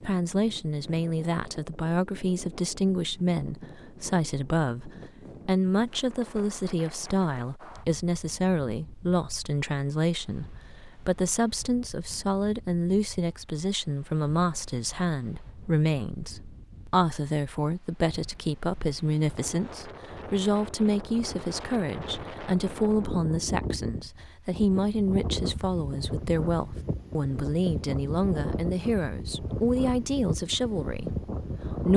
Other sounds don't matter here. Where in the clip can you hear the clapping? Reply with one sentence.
The clapping can't be heard in this clip.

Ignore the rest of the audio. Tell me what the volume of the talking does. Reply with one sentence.
The volume of the talking stays about the same.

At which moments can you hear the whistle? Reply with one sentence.
You can't hear the whistle here.